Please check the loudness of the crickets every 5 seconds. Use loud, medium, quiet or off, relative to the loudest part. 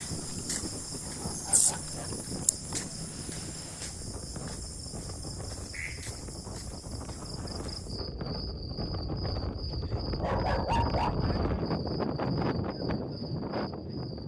loud, medium, medium.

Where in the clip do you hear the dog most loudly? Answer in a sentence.
The volume of the dog peaks at 11 seconds.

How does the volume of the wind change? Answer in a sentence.
The loudness of the wind goes up.